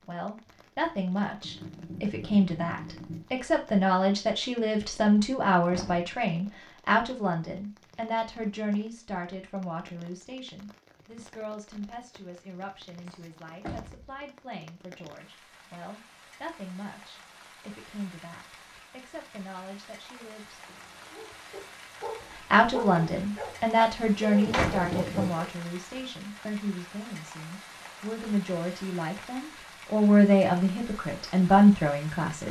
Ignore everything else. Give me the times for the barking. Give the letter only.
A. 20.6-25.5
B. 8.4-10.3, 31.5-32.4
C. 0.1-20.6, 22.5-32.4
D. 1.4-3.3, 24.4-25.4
A.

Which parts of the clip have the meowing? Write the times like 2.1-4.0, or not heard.
1.4-3.3, 24.4-25.4.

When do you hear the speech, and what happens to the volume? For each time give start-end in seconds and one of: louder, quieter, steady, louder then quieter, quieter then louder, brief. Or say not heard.
0.1-20.6 quieter
22.5-32.4 quieter then louder.